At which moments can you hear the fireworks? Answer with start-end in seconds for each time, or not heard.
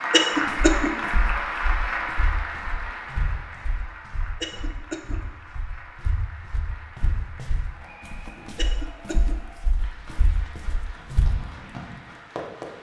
9.9-12.7.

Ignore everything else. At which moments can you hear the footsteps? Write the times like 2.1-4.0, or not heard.
0.5-11.3.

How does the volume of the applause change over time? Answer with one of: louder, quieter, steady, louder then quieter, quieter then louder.
quieter.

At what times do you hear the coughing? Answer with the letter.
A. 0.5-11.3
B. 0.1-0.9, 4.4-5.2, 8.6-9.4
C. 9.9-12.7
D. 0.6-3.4
B.